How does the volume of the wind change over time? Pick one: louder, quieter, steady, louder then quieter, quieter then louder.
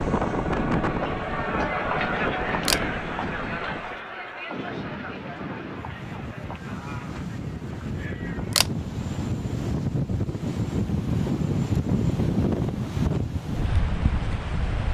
quieter then louder.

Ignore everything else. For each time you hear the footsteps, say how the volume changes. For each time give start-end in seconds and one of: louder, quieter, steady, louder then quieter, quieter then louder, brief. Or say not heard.
not heard.